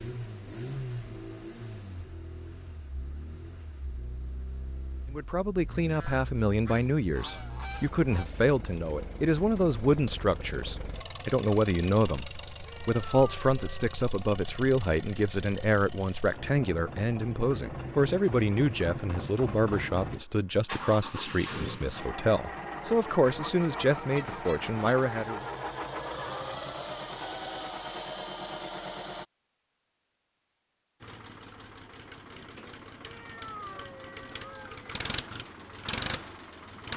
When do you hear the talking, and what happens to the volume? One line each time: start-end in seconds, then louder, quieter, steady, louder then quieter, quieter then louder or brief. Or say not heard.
5.1-25.4 steady.